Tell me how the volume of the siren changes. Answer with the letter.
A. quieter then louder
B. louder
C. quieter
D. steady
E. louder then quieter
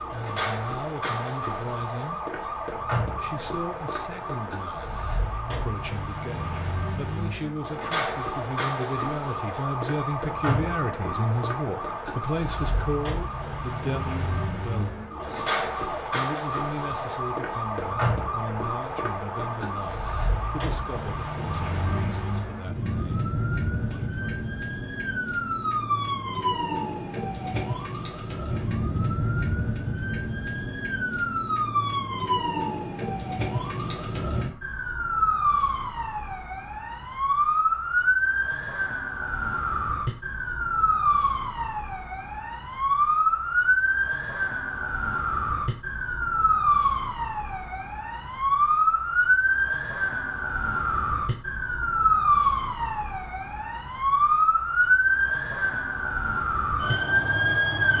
B.